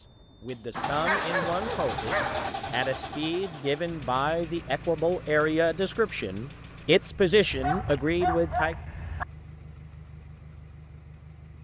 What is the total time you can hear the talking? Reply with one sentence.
You can hear the talking for 8 seconds altogether.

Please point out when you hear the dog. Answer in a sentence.
You can hear the dog from 0.8 to 2.5 s and from 7.5 to 9.2 s.